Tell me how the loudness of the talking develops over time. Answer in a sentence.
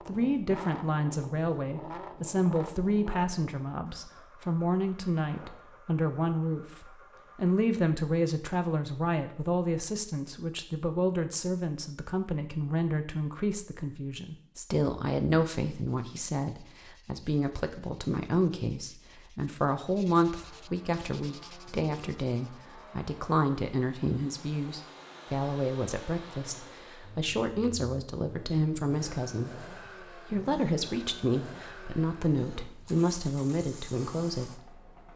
The volume of the talking stays about the same.